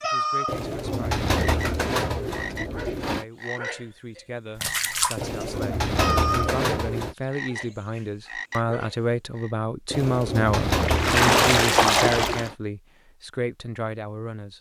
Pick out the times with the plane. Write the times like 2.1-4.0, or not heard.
not heard.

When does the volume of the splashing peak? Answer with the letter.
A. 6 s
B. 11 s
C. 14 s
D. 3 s
B.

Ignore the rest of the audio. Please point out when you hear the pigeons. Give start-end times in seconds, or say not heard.
0.5-3.2, 5.2-7.2, 9.9-12.6.